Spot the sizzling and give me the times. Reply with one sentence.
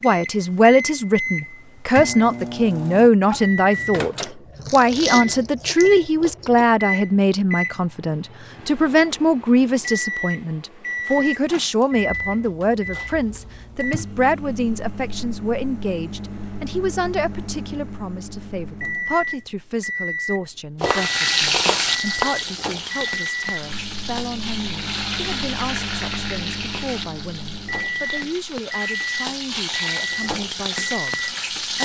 The sizzling can be heard from 20.8 to 31.7 s.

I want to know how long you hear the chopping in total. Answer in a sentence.
You can hear the chopping for 2 seconds altogether.